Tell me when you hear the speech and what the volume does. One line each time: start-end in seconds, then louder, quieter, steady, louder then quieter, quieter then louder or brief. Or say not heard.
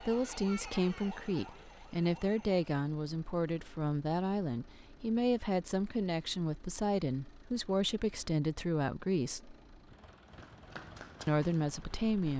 0.1-9.6 steady
11.2-12.3 brief.